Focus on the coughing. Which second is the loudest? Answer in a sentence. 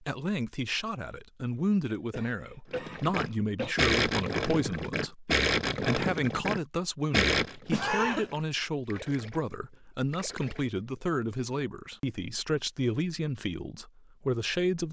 The volume of the coughing peaks at 8 seconds.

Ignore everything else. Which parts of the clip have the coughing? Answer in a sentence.
You can hear the coughing from 1.9 to 3.8 s and from 7.7 to 8.2 s.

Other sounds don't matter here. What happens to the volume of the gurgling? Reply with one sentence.
The loudness of the gurgling goes down.